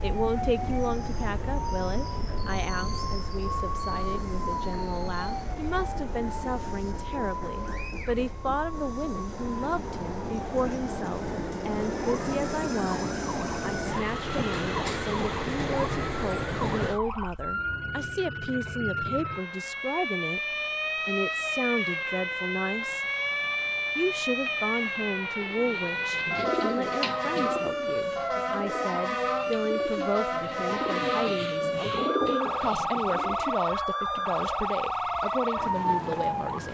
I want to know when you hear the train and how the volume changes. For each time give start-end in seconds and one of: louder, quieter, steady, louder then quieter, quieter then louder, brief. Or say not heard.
0.0-17.0 louder.